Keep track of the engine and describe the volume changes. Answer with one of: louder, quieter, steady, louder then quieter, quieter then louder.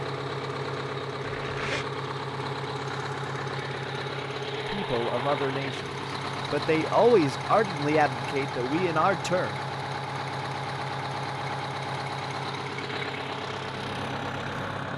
steady.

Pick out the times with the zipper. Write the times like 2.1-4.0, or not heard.
1.2-1.9.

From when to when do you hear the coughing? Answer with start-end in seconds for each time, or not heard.
not heard.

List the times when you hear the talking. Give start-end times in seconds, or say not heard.
4.5-5.9, 6.5-9.6.